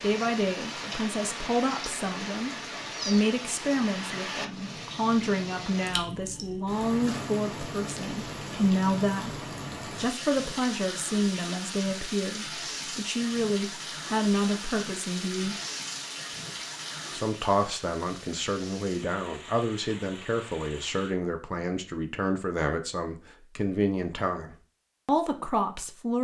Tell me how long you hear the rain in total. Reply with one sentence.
The rain can be heard for 21 seconds in total.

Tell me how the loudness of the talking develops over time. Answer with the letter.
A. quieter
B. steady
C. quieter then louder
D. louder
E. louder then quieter
B.